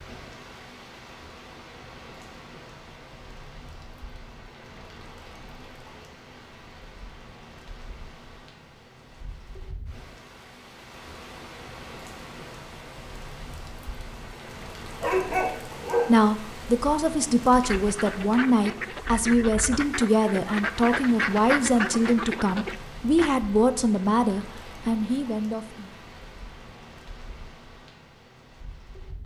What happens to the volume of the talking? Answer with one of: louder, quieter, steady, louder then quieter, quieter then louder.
steady.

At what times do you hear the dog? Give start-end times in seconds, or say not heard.
15.0-16.2.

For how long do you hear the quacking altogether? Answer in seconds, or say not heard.
6 s.